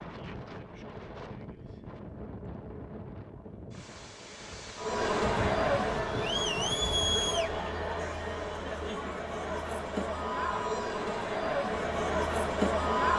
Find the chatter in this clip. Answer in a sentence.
The chatter can be heard from 4.8 to 13.1 s.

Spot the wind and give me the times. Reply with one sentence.
You can hear the wind from 0.0 to 7.2 s.